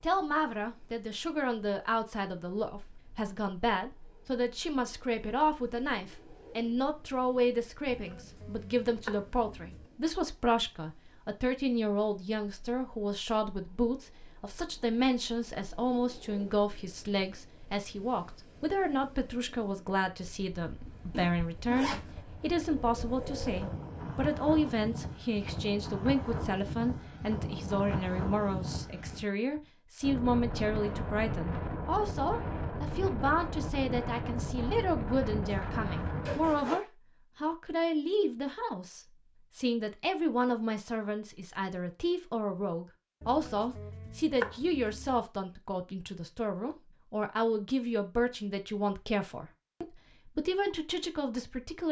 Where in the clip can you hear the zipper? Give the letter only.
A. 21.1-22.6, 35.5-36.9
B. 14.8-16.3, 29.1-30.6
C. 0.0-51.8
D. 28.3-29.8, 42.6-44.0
A.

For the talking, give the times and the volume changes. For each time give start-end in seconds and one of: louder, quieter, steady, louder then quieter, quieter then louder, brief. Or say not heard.
0.0-51.8 steady.